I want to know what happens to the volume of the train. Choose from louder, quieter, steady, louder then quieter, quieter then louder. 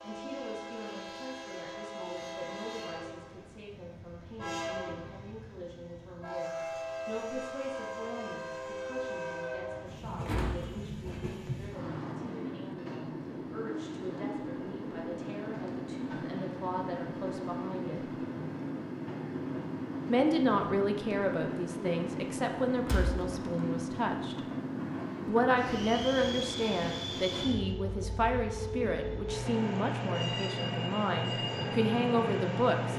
louder.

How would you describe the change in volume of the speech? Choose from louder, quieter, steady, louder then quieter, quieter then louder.
louder.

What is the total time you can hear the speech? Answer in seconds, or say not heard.
30 s.